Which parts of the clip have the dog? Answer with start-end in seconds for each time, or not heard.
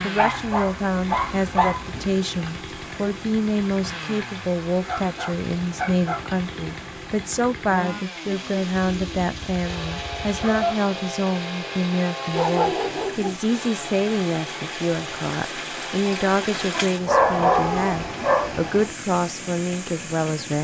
0.1-2.1, 4.8-6.3, 8.8-10.8, 12.3-13.3, 16.7-18.6.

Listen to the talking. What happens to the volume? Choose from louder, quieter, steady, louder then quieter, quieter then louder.
steady.